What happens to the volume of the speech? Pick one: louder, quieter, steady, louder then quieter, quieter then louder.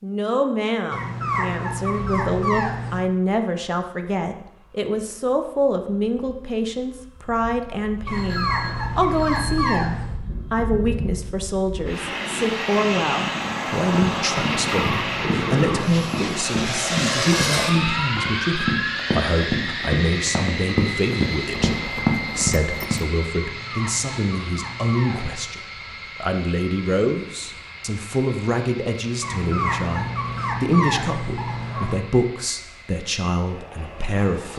steady.